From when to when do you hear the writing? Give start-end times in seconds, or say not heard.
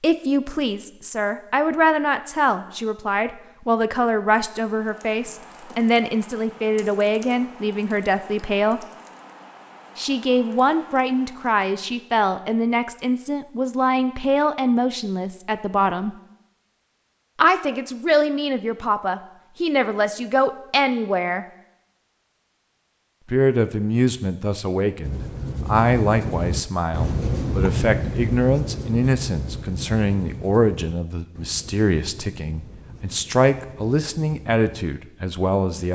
25.0-34.6.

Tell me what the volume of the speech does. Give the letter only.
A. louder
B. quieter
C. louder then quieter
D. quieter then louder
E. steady
E.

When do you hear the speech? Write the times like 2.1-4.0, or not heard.
0.0-8.8, 9.9-16.1, 17.4-21.4, 23.3-35.8.